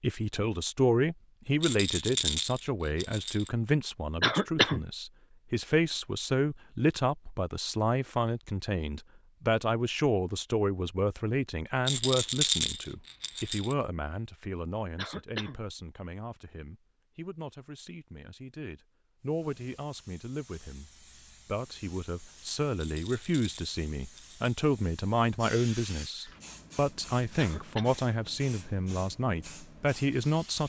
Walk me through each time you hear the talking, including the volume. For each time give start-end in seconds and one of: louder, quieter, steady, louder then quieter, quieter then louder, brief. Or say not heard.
0.0-30.6 quieter then louder.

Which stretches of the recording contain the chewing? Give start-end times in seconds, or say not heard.
not heard.